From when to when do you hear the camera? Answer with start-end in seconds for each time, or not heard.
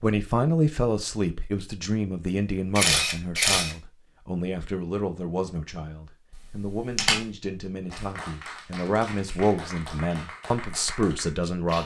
2.7-3.8, 6.3-7.2.